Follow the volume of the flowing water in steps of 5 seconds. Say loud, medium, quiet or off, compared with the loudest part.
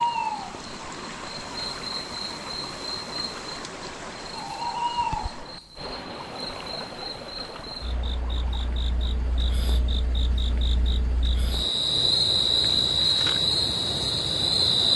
loud, loud, off.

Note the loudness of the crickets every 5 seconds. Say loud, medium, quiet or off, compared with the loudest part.
medium, quiet, loud.